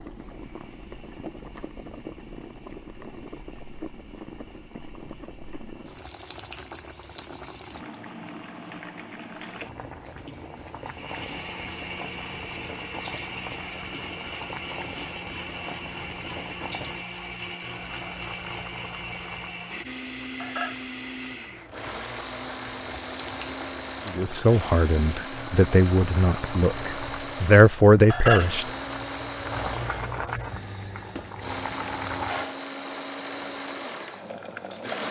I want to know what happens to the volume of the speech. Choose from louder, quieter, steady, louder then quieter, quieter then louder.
quieter then louder.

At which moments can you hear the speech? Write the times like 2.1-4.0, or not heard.
24.1-28.6.